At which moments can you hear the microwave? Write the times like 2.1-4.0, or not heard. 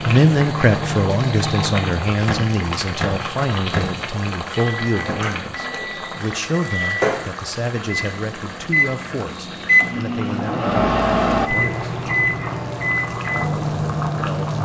0.0-14.6.